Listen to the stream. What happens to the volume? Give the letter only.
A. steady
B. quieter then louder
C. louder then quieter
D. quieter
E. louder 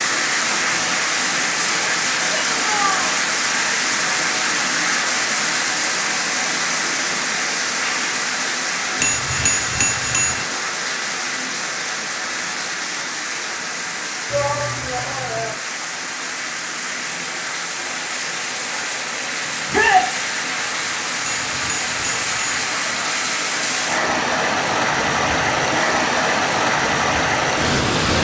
B.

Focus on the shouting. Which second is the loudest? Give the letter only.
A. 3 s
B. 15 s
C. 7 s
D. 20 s
D.